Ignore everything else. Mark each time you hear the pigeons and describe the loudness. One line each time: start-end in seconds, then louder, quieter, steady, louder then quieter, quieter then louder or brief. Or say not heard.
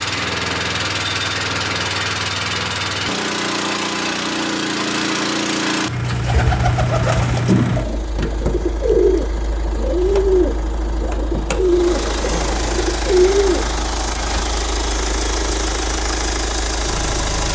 5.9-14.4 steady.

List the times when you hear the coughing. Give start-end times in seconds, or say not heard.
not heard.